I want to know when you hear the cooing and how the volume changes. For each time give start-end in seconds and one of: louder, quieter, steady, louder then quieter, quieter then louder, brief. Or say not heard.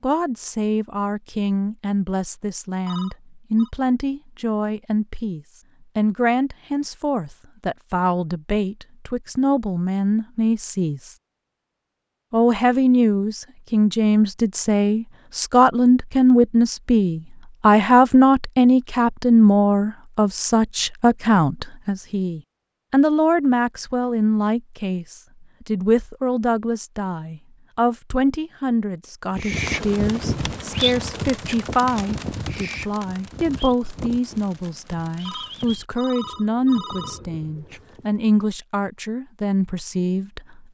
29.4-38.1 quieter.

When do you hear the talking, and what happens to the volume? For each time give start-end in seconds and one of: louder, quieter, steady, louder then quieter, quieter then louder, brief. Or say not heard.
0.0-11.2 steady
12.3-40.6 quieter.